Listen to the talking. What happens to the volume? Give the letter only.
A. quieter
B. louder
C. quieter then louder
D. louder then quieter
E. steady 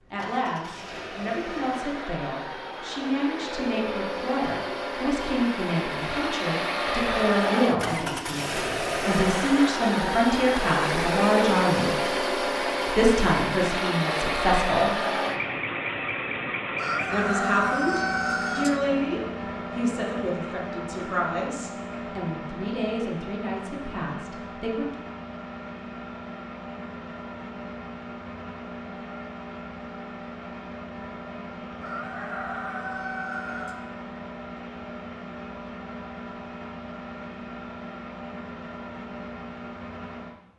D.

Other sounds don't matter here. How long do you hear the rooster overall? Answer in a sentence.
The rooster can be heard for 4 seconds in total.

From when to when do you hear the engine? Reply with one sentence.
You can hear the engine from 0.0 to 40.4 s.